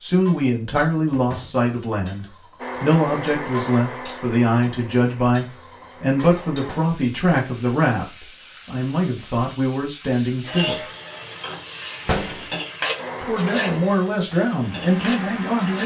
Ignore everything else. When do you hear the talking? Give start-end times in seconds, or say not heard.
0.0-10.8, 13.2-15.8.